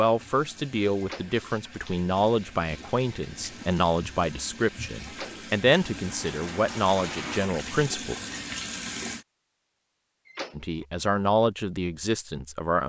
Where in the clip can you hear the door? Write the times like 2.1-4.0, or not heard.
0.9-1.4, 5.0-5.5, 10.2-10.7.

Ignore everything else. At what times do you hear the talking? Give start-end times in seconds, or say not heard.
0.0-8.2, 10.6-12.8.